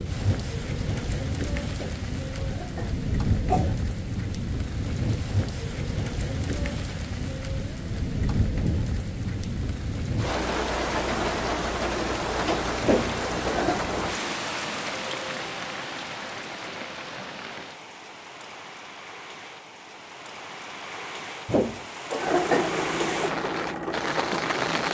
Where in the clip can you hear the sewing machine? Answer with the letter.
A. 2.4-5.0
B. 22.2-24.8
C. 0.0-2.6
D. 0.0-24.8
B.